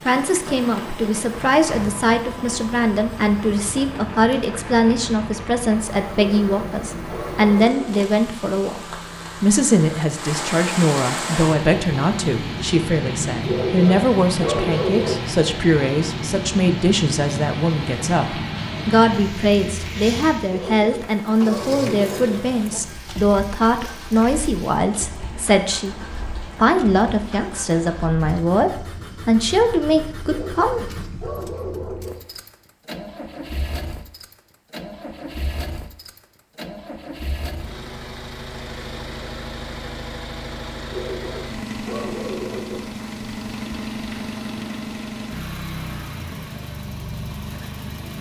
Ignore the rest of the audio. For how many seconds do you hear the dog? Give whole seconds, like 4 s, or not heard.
9 s.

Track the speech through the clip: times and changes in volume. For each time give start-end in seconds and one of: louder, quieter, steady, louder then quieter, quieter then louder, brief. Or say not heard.
0.1-30.9 steady.